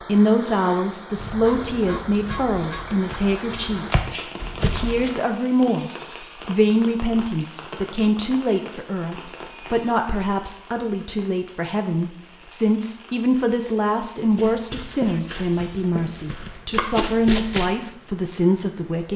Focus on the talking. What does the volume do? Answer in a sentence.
The volume of the talking stays about the same.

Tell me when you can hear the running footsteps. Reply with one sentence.
You can hear the running footsteps from 1.6 to 5.1 s and from 14.2 to 17.8 s.